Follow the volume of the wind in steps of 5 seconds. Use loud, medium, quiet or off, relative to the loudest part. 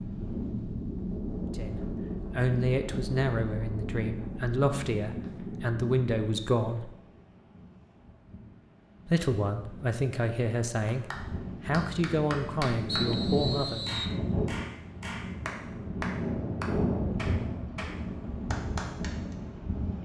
loud, medium, loud, loud.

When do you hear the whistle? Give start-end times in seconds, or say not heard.
12.8-14.2.